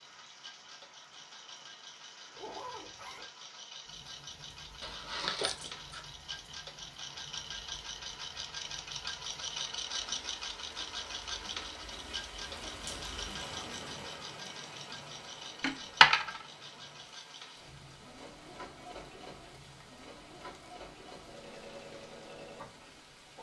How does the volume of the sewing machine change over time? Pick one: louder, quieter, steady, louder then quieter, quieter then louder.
louder then quieter.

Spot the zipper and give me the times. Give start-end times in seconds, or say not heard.
2.4-3.3.